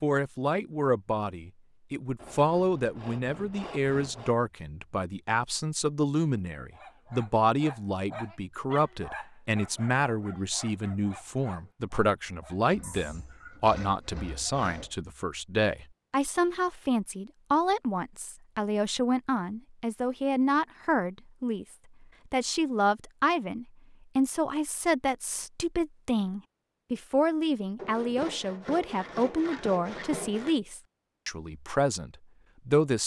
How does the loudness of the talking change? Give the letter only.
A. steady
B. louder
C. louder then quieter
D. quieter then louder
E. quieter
A.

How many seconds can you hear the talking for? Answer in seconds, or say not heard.
33 s.